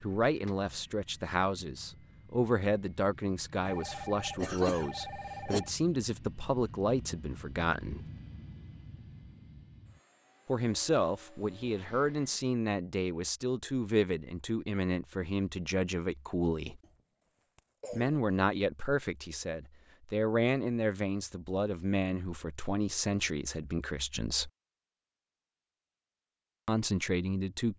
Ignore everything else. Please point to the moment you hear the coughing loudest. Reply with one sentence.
The loudest moment of the coughing is at 5 seconds.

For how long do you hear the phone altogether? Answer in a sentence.
The phone can be heard for 2 seconds in total.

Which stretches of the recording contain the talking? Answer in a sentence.
The talking can be heard from 0.0 to 8.1 s, from 10.4 to 16.8 s, from 17.9 to 24.5 s and from 26.6 to 27.7 s.